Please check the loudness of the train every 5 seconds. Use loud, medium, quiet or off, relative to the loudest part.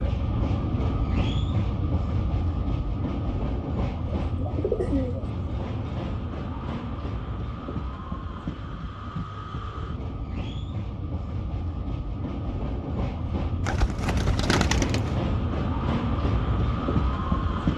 loud, medium, medium, loud.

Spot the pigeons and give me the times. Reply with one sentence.
The pigeons can be heard from 4.2 to 5.3 s and from 13.7 to 15.2 s.